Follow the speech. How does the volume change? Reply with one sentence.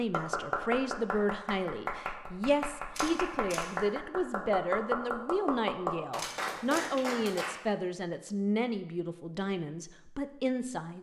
The volume of the speech stays about the same.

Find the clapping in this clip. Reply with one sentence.
The clapping can be heard from 0.0 to 7.6 s.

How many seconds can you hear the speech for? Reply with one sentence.
You can hear the speech for 11 seconds altogether.